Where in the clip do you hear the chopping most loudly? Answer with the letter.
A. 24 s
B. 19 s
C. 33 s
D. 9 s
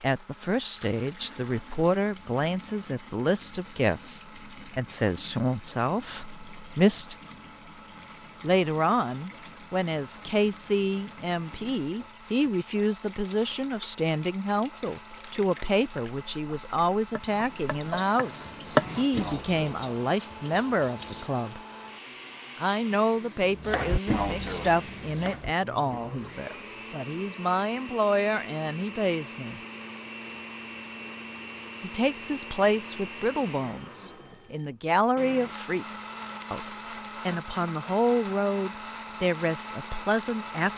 B.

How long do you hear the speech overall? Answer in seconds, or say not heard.
36 s.